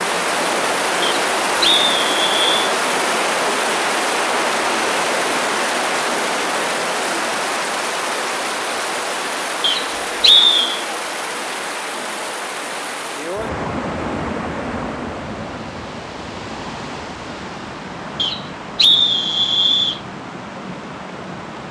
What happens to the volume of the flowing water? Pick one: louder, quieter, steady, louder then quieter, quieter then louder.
quieter.